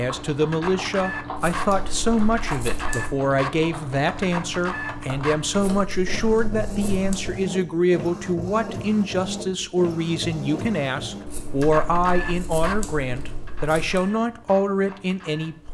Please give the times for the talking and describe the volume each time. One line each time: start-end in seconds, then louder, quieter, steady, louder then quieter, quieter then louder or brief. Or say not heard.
0.0-15.6 steady.